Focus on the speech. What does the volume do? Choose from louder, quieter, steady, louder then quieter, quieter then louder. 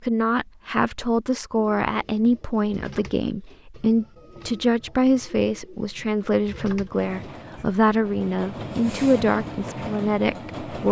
steady.